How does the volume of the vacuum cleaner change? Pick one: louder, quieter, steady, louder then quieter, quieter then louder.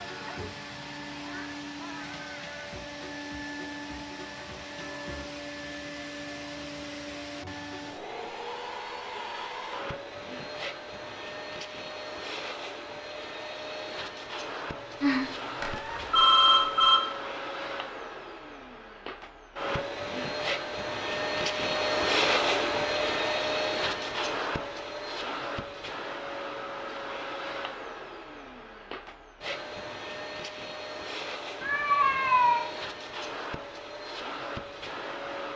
louder then quieter.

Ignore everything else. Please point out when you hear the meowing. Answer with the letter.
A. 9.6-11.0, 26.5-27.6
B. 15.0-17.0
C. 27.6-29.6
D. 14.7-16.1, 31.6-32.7
D.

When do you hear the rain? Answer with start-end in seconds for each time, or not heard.
not heard.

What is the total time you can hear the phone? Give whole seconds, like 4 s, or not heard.
2 s.